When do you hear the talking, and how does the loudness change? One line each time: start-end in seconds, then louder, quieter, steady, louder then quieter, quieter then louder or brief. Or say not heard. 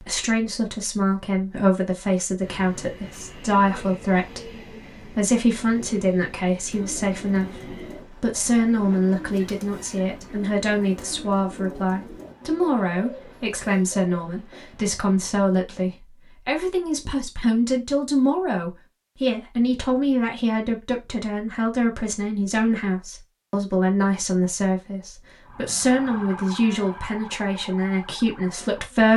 0.0-29.1 steady.